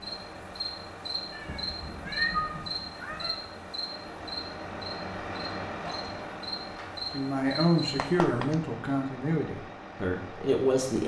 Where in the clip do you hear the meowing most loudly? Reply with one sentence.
The loudest moment of the meowing is at 2 seconds.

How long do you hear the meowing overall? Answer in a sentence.
The meowing can be heard for 3 seconds in total.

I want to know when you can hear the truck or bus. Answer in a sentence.
The truck or bus can be heard from 0.0 to 11.0 s.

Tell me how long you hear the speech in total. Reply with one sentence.
You can hear the speech for 4 seconds altogether.